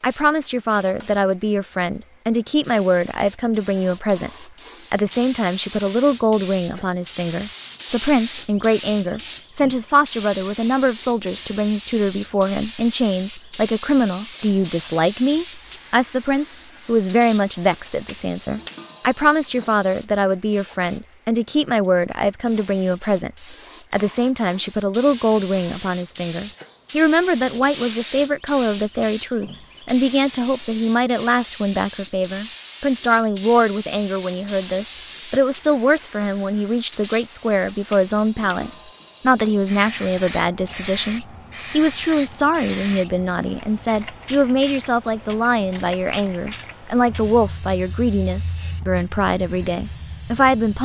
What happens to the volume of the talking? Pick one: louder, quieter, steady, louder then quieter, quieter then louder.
steady.